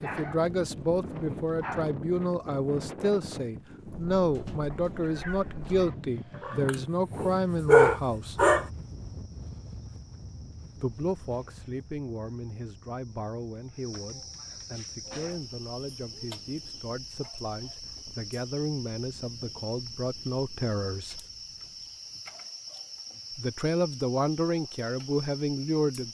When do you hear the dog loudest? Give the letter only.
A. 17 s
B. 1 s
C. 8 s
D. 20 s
C.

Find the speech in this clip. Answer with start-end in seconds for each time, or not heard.
0.0-8.4, 10.8-21.2, 23.4-26.0.